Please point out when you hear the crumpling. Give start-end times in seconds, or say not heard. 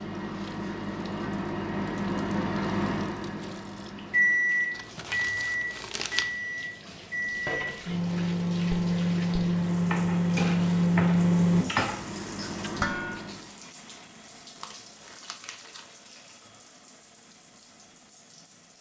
4.7-6.4, 14.6-16.0.